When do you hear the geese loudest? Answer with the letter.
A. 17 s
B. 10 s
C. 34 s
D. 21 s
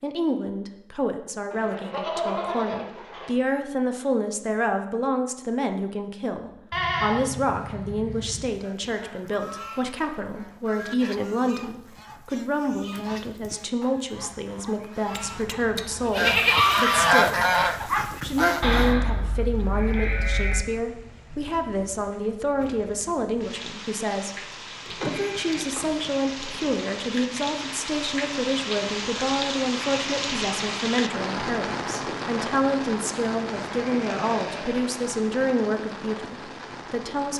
A.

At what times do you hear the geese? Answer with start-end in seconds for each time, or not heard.
8.6-18.9.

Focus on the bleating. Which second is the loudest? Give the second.
16 s.